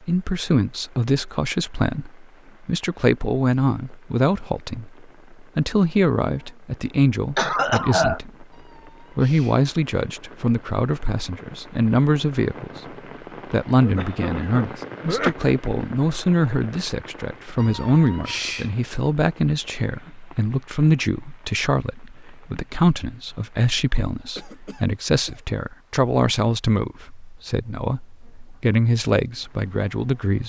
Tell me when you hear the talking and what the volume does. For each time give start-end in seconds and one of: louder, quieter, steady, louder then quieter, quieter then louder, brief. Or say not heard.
0.1-8.4 steady
9.2-30.4 steady.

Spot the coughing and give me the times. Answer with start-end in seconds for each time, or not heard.
7.3-8.2, 13.8-15.3, 24.4-25.4.